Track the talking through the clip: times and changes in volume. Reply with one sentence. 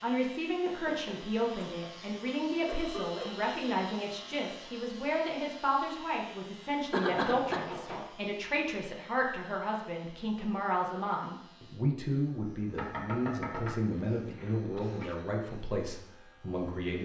You can hear the talking from 0.0 to 17.0 s, at a steady volume.